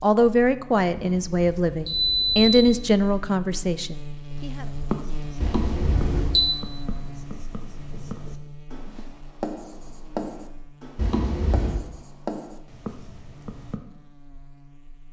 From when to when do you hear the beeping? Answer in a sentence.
The beeping can be heard from 0.9 to 2.7 s, from 5.4 to 6.5 s and from 10.9 to 11.8 s.